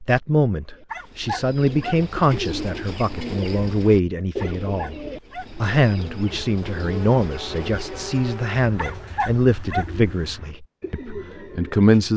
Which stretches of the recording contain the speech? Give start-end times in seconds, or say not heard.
0.0-5.0, 5.5-12.1.